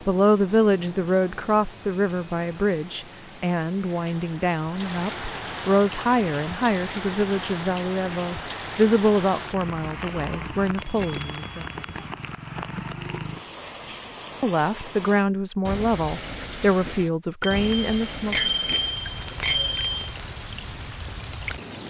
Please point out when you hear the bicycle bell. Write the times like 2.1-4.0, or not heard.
1.9-2.5, 10.8-12.1, 17.4-20.1.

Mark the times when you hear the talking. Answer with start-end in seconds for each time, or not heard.
0.1-11.7, 14.4-18.5.